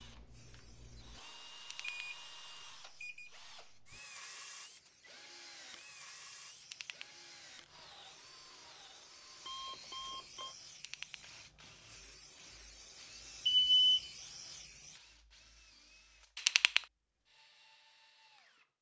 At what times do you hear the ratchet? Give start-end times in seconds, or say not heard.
1.6-2.1, 6.6-7.1, 10.7-11.2, 16.4-16.9.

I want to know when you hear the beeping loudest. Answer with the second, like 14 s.
14 s.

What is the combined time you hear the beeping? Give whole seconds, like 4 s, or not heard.
4 s.